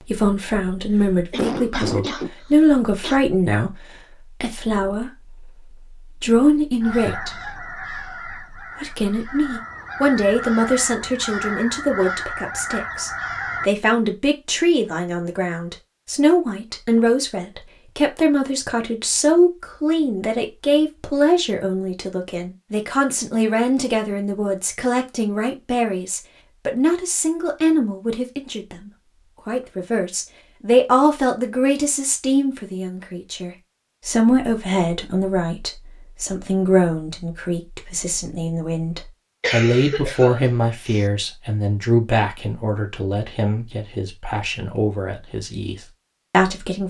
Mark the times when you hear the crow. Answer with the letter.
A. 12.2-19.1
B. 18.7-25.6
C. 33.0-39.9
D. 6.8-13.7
D.